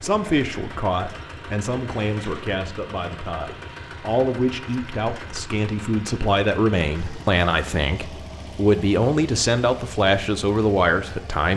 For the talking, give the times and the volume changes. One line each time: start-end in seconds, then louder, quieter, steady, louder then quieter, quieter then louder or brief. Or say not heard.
0.0-11.5 louder.